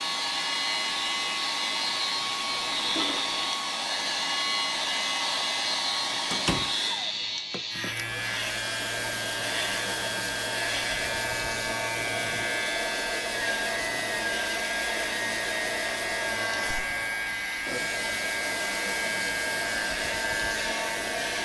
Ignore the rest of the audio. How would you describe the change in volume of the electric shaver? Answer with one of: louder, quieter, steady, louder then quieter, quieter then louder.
steady.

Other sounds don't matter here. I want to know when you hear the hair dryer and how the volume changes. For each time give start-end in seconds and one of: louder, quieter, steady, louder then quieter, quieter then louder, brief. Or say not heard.
0.0-21.3 steady.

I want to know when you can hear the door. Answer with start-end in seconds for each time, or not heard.
6.3-6.7.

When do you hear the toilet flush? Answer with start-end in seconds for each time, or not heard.
2.5-3.5.